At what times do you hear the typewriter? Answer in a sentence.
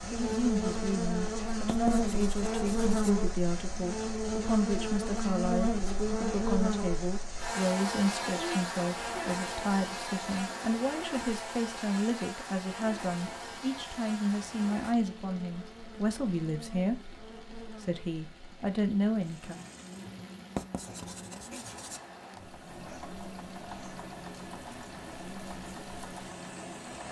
The typewriter can't be heard in this clip.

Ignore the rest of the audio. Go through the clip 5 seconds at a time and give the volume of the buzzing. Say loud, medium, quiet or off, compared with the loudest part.
loud, loud, medium, quiet, quiet, quiet.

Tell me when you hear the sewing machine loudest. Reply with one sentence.
The volume of the sewing machine peaks at 24 seconds.